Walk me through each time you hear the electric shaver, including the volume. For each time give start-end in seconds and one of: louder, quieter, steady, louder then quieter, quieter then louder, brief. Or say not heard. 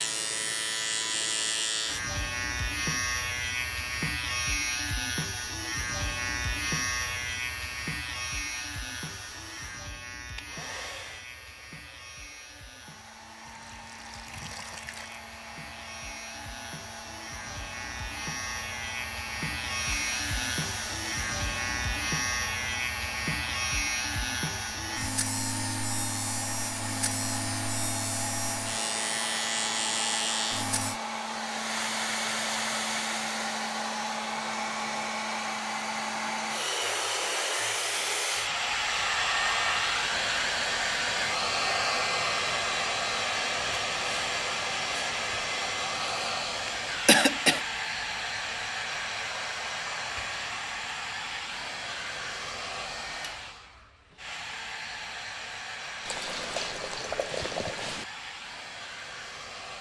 0.0-31.0 quieter then louder.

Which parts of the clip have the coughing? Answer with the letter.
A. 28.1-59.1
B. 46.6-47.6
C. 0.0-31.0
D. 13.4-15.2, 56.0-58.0
B.